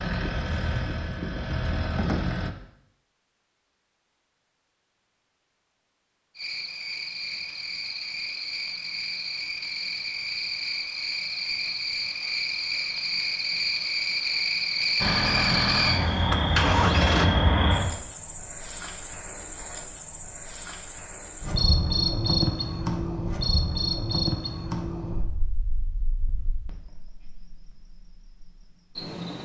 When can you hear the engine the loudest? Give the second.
17 s.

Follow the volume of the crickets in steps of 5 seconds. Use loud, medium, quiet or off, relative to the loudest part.
off, medium, loud, loud, loud, quiet.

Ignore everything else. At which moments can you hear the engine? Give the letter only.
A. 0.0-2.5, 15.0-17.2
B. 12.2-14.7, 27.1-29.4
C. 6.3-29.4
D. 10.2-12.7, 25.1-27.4
A.